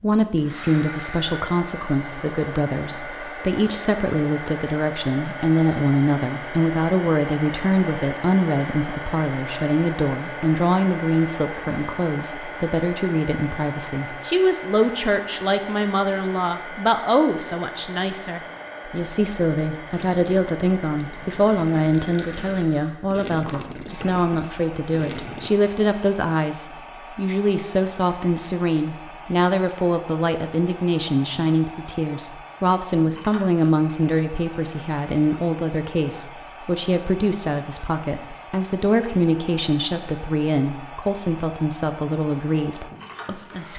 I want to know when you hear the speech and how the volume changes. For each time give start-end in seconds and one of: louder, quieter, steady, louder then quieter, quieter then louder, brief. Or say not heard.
0.0-43.7 steady.